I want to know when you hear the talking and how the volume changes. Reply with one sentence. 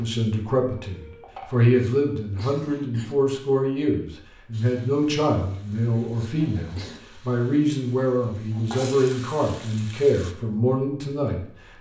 The talking can be heard from 0.0 to 11.4 s, at a steady volume.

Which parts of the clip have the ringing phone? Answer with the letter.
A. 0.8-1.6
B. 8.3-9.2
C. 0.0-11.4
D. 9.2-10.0
A.